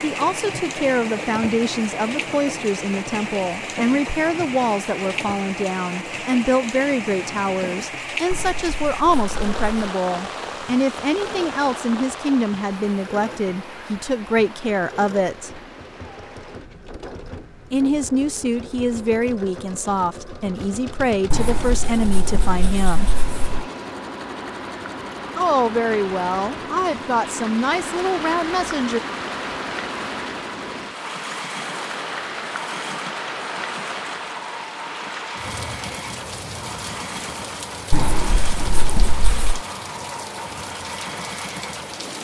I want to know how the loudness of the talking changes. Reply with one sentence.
The volume of the talking stays about the same.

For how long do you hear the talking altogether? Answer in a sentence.
The talking can be heard for 25 seconds in total.